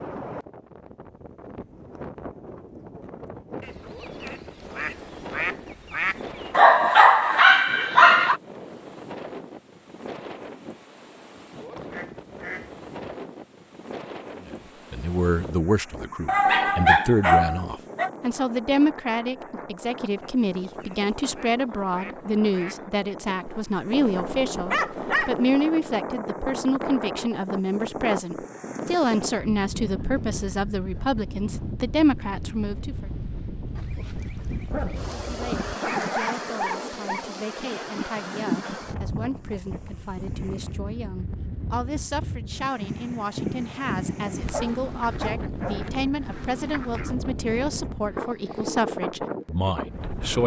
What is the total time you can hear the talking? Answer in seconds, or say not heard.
34 s.